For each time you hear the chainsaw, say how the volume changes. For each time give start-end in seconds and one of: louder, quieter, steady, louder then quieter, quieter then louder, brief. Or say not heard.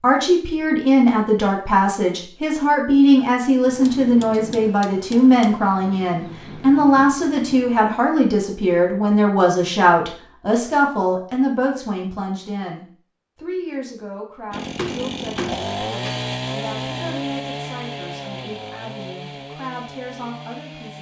14.5-20.9 quieter.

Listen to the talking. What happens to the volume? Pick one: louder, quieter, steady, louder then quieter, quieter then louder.
quieter.